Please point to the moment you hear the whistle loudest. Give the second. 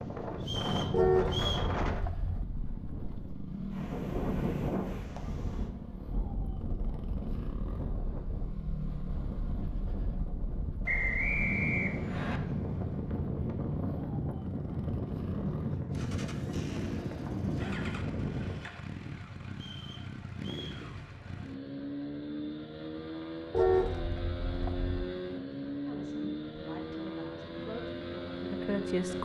11 s.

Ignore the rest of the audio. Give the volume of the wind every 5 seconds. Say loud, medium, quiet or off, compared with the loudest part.
loud, medium, loud, loud, off, off.